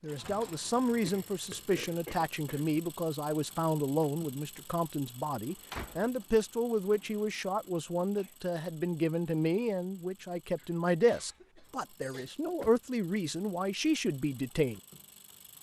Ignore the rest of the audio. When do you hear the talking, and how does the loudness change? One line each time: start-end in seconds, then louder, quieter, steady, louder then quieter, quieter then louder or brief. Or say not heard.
0.0-14.8 steady.